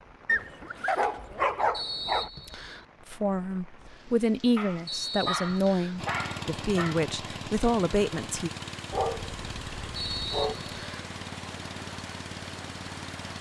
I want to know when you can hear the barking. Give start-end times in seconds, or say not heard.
0.2-2.3, 4.5-7.0, 8.9-10.6.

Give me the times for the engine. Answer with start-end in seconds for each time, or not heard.
6.0-13.3.